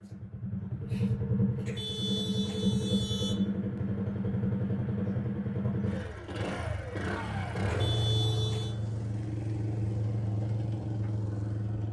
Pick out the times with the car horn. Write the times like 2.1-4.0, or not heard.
1.6-3.4, 7.7-8.8.